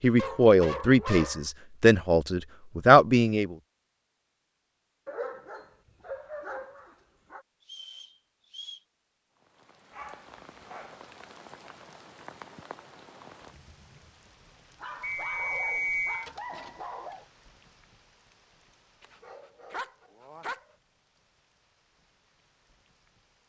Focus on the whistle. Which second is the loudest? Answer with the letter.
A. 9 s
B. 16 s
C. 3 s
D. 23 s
B.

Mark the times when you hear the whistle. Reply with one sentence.
The whistle can be heard from 7.6 to 8.8 s and from 15.0 to 16.2 s.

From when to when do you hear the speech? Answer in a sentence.
You can hear the speech from 0.0 to 3.5 s.